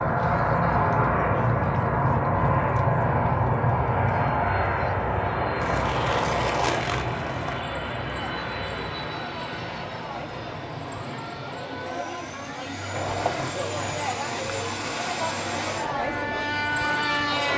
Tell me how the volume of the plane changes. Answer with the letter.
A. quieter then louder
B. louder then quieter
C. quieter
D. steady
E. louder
A.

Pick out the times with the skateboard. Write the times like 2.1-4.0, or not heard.
5.5-7.7, 12.9-14.4.